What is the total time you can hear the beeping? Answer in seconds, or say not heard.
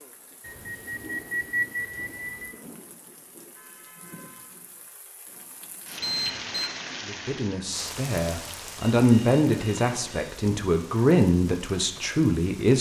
4 s.